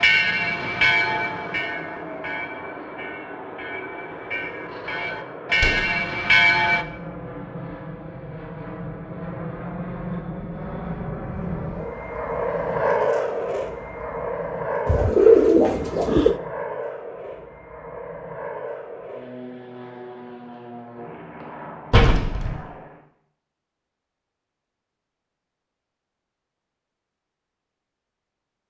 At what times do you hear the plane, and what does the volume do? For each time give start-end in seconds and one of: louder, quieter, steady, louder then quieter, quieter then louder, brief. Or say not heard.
0.0-23.0 louder then quieter.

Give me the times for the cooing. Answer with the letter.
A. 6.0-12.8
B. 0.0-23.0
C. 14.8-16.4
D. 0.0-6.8
C.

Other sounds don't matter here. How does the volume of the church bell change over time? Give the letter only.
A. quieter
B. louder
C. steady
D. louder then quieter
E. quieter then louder
E.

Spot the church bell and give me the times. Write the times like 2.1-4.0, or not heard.
0.0-6.8.